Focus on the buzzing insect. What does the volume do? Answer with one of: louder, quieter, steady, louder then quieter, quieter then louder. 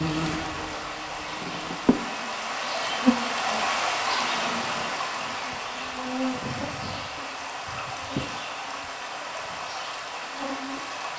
louder then quieter.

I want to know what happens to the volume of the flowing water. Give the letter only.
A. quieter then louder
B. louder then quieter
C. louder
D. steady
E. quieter
B.